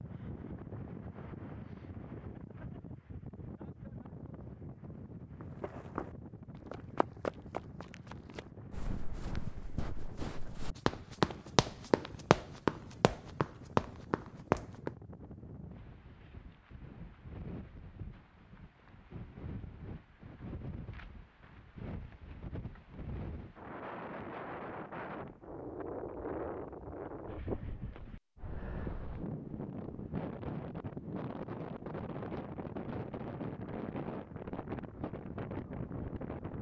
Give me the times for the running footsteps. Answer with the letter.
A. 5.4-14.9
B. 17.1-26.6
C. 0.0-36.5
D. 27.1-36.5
A.